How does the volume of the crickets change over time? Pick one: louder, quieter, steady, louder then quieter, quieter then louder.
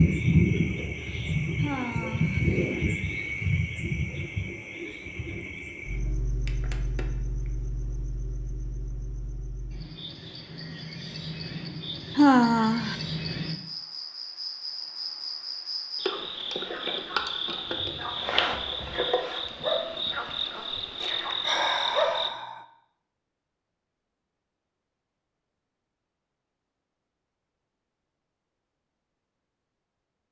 quieter then louder.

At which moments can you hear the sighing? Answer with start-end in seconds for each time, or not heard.
1.6-2.4, 12.2-12.9, 21.4-22.6.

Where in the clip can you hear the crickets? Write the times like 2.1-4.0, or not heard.
0.0-22.3.